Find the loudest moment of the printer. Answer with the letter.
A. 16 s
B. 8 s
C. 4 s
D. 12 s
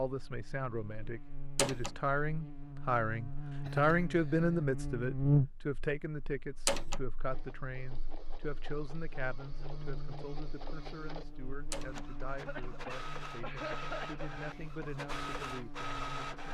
A.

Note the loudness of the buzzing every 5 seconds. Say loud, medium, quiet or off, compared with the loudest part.
medium, loud, quiet, quiet.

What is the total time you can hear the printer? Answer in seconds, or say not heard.
9 s.